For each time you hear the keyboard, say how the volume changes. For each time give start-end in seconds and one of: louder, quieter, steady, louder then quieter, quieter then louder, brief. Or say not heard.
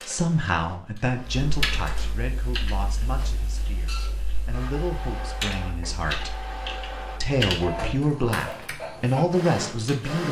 1.4-8.8 quieter then louder.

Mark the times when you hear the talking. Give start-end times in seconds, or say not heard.
0.1-6.4, 7.2-10.2.